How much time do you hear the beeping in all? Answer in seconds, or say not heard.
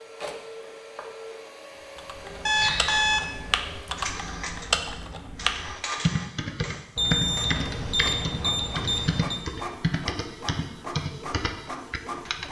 3 s.